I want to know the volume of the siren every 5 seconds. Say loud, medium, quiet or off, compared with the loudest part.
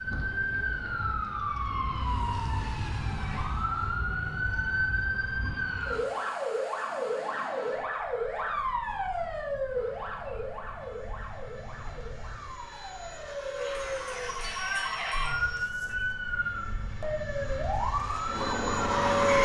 loud, loud, medium, loud.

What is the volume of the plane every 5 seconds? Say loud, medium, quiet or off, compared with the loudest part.
quiet, quiet, medium, loud.